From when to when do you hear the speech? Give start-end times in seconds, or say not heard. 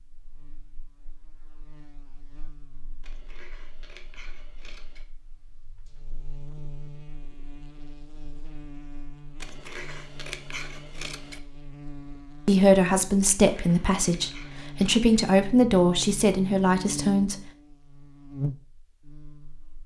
12.4-17.4.